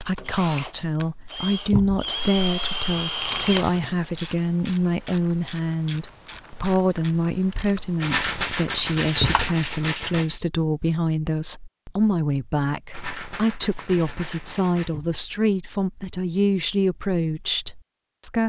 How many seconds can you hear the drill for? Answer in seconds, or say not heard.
4 s.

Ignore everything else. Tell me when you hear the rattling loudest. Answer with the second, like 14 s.
8 s.